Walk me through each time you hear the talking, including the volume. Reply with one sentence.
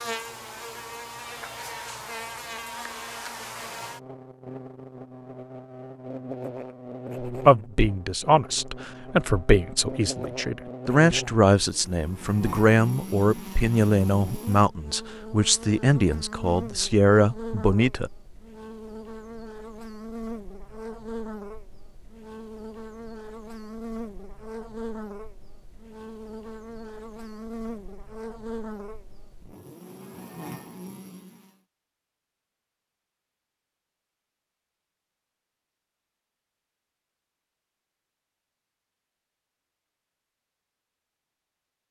You can hear the talking from 7.2 to 18.1 s, at a steady volume.